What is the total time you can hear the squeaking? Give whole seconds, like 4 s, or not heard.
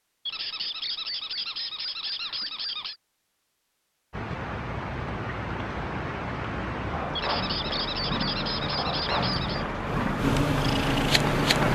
5 s.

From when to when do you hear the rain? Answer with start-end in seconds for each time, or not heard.
4.1-11.7.